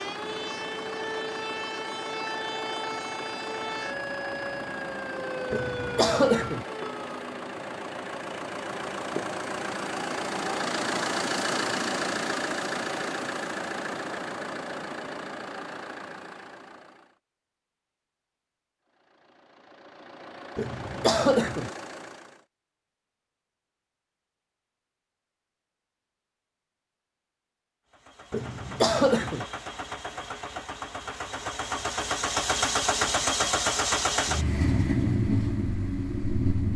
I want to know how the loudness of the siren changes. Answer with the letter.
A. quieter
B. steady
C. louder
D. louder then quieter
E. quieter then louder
B.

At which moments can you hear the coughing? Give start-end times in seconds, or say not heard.
5.5-6.7, 20.6-21.7, 28.3-29.4.